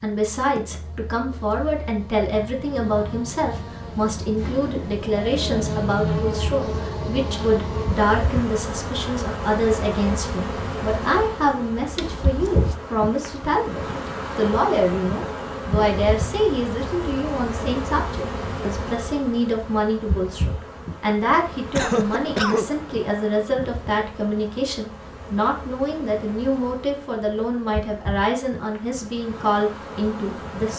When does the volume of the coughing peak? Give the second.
22 s.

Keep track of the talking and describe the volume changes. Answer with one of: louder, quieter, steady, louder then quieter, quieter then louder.
steady.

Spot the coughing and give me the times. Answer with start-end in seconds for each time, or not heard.
11.9-12.8, 21.8-22.6.